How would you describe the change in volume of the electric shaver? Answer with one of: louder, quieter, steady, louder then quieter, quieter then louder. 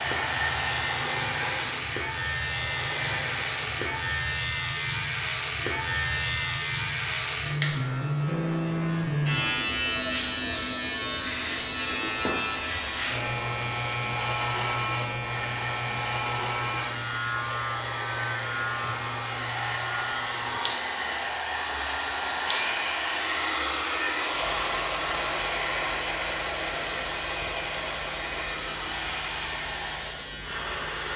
quieter.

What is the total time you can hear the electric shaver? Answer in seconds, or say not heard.
31 s.